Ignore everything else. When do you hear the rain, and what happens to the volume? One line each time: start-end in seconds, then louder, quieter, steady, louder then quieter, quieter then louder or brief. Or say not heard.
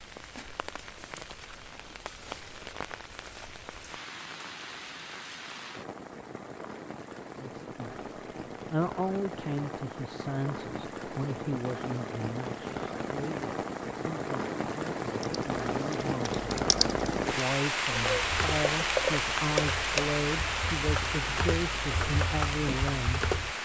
0.0-23.6 louder.